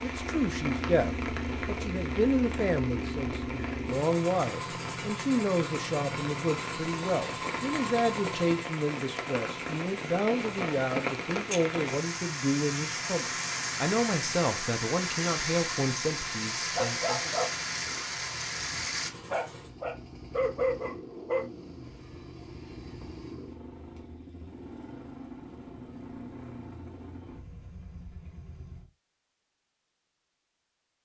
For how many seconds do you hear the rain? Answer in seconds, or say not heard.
19 s.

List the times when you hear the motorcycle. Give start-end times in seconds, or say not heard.
0.0-28.9.